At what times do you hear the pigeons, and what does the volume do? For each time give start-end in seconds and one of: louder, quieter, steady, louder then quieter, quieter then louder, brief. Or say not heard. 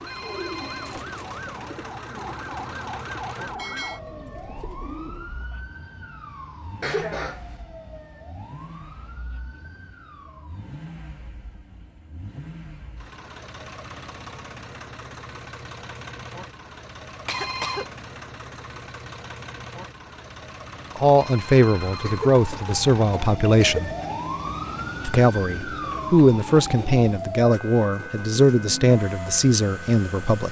0.0-5.3 quieter.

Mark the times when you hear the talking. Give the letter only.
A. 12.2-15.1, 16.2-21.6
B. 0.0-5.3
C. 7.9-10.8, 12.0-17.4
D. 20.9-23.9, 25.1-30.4
D.